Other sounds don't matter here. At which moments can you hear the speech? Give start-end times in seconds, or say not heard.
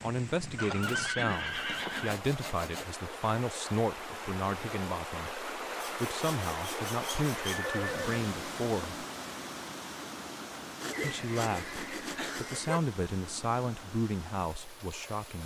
0.0-9.1, 11.0-15.4.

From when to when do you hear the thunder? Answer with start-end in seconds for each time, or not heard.
not heard.